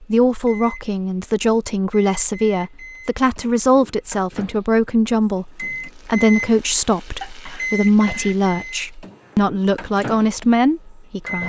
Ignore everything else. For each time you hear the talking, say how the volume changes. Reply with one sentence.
The talking can be heard from 0.0 to 11.4 s, at a steady volume.